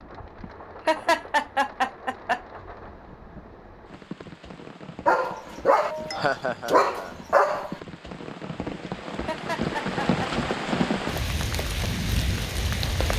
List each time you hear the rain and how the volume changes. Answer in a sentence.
The rain can be heard from 0.0 to 13.1 s, getting louder.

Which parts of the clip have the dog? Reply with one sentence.
You can hear the dog from 5.0 to 7.8 s.